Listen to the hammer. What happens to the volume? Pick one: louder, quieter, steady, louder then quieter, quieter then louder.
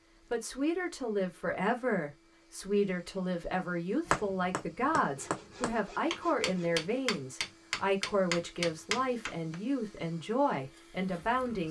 louder.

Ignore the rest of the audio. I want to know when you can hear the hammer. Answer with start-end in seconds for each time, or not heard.
4.0-9.6.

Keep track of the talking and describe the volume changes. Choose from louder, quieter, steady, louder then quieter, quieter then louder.
steady.